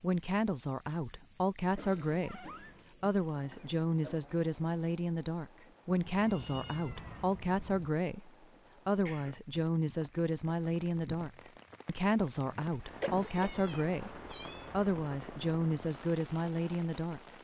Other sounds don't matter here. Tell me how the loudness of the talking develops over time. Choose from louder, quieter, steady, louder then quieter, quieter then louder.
steady.